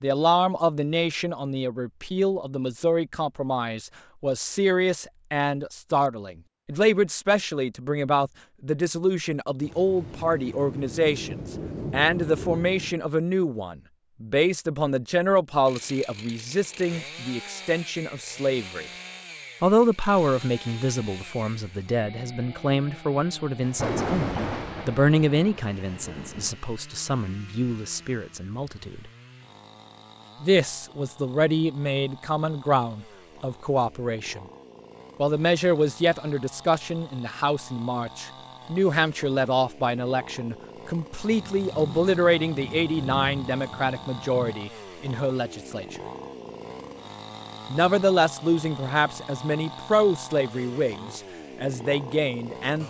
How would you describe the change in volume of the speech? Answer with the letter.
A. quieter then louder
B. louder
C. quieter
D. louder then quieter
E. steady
E.